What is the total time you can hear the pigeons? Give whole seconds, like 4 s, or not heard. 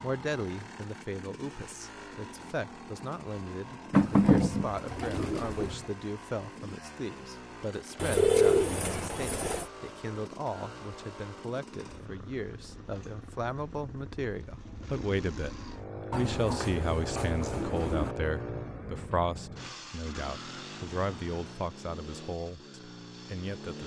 6 s.